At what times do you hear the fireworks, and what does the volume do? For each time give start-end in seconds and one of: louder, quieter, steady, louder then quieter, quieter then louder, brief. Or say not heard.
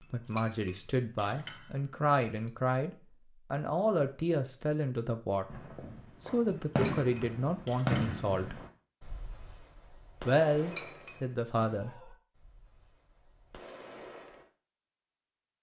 5.5-14.5 quieter.